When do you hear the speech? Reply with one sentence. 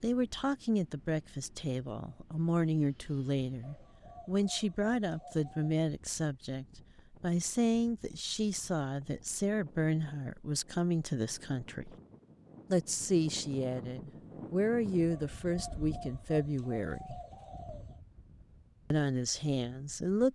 You can hear the speech from 0.0 to 11.9 s, from 12.7 to 17.2 s and from 18.9 to 20.3 s.